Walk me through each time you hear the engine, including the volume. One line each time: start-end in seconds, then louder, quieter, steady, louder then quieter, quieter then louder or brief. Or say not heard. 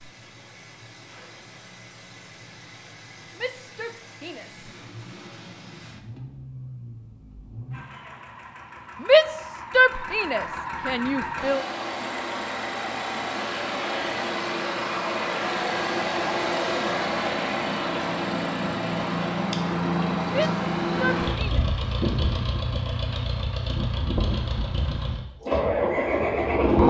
0.0-26.8 louder.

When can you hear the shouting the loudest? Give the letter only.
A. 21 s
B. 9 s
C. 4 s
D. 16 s
B.